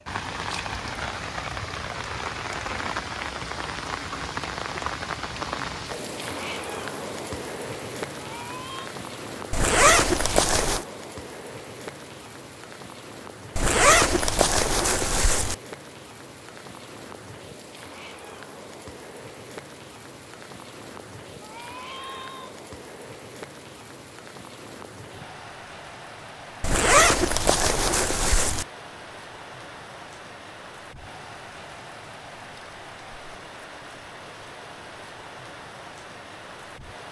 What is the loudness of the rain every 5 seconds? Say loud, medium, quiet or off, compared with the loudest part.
loud, loud, medium, medium, medium, medium, medium, medium.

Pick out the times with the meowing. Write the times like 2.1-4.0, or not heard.
8.2-8.9, 21.4-22.5.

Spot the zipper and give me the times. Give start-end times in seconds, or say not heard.
9.5-10.8, 13.6-15.6, 26.6-28.6.